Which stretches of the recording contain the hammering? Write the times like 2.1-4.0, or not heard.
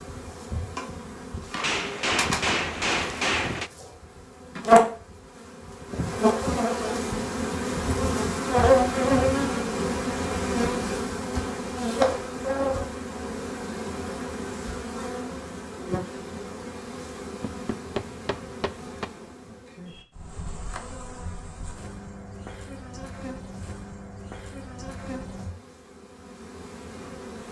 1.6-3.7, 17.4-19.1.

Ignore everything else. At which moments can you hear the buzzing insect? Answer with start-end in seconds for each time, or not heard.
0.0-27.4.